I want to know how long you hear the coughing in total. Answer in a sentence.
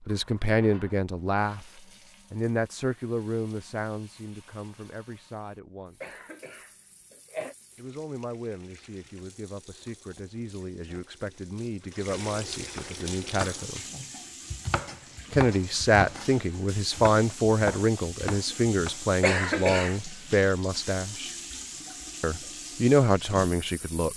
The coughing can be heard for 2 seconds in total.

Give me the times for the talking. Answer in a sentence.
You can hear the talking from 0.1 to 6.2 s, from 7.8 to 13.8 s, from 15.3 to 21.3 s and from 22.2 to 24.1 s.